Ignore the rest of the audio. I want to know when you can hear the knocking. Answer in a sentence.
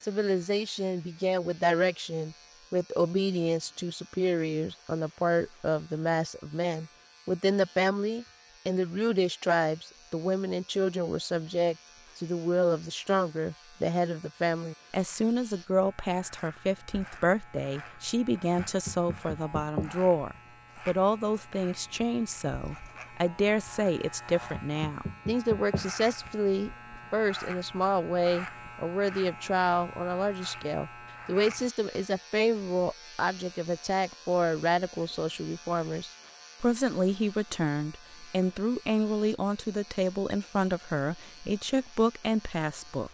The knocking can be heard from 18.6 to 19.9 s and from 24.5 to 25.9 s.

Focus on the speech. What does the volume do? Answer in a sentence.
The volume of the speech stays about the same.